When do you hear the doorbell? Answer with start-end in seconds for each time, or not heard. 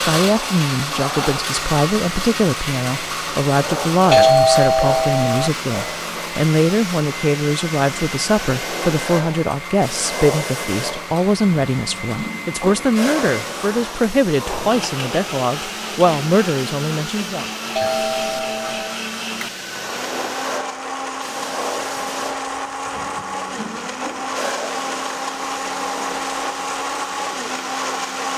4.1-5.5, 17.8-19.0.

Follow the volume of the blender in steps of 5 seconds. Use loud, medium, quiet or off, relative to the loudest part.
loud, medium, medium, medium, loud, loud.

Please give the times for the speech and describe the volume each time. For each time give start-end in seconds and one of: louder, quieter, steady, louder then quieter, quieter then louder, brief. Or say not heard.
0.1-17.4 steady.